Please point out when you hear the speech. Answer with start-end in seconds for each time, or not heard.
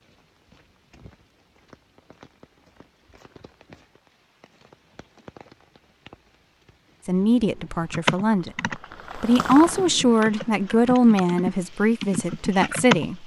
7.0-13.2.